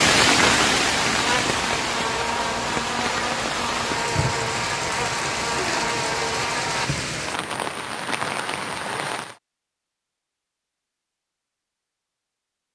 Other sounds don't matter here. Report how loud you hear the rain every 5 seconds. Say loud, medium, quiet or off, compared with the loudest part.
loud, medium, off.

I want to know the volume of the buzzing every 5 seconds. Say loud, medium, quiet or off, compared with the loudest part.
loud, loud, off.